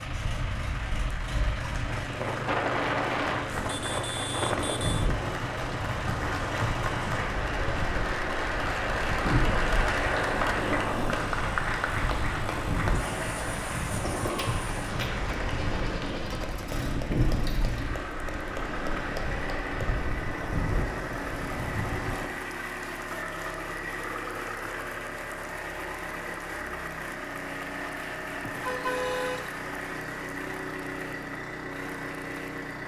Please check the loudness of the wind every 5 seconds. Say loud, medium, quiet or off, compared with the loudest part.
loud, loud, loud, loud, loud, off, off.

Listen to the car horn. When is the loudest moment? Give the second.
29 s.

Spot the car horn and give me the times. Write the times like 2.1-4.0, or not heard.
3.5-5.1, 28.4-29.6.